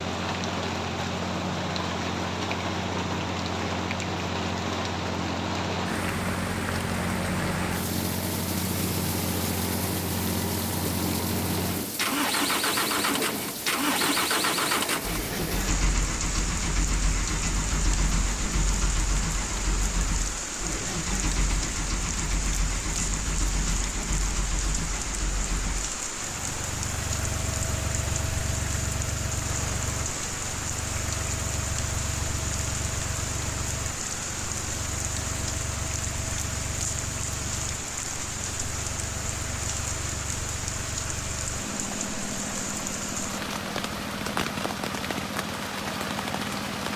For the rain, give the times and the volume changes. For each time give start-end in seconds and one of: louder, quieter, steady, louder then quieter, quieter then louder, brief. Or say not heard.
0.0-46.9 steady.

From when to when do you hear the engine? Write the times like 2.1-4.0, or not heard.
0.0-46.9.